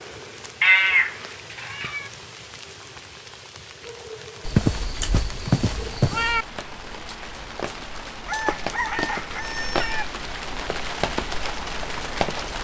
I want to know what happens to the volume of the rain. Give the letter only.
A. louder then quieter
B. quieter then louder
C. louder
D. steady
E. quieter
C.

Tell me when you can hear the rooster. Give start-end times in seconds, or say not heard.
8.2-10.1.